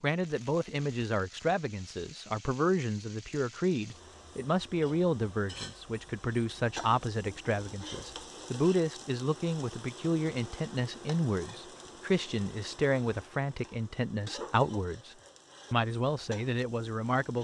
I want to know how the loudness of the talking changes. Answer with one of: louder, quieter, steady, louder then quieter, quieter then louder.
steady.